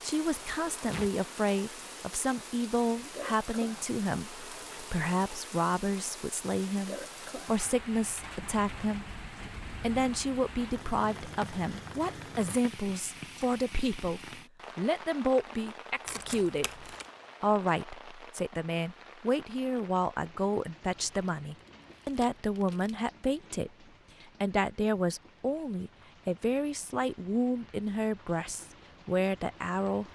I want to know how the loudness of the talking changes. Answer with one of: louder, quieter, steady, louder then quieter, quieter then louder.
steady.